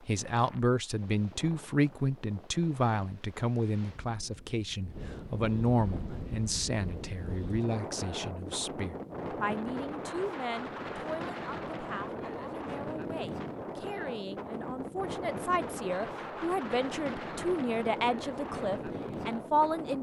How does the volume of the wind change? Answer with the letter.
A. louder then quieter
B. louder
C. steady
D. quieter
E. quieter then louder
B.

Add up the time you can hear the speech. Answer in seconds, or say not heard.
20 s.